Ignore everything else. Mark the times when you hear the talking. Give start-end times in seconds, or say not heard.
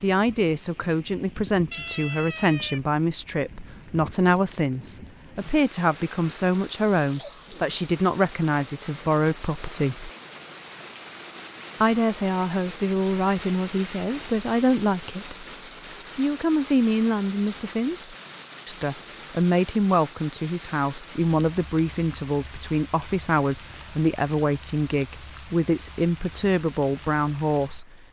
0.0-10.1, 11.8-15.4, 16.1-27.9.